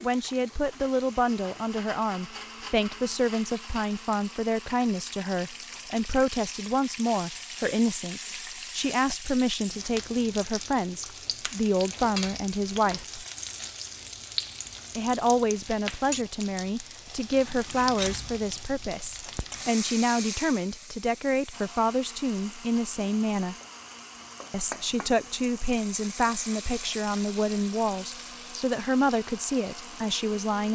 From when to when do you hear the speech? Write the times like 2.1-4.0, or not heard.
0.0-13.2, 14.9-23.6, 24.5-30.7.